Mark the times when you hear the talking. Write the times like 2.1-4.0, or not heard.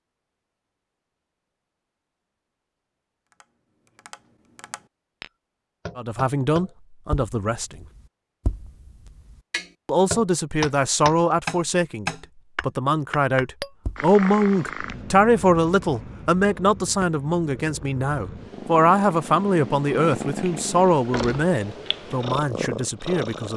6.0-7.8, 9.8-23.5.